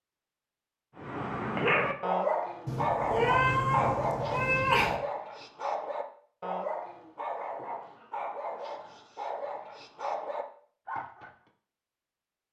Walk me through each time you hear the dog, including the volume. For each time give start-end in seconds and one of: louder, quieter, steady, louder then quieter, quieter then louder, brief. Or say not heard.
0.9-11.3 quieter.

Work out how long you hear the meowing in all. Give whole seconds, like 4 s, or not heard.
2 s.